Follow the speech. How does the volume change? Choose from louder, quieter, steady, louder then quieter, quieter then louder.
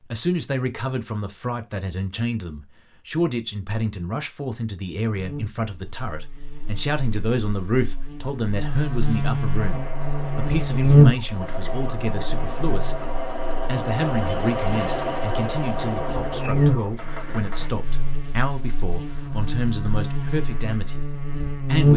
steady.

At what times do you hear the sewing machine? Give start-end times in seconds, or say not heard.
9.6-17.7.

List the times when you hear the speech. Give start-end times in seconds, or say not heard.
0.0-13.0, 13.7-21.9.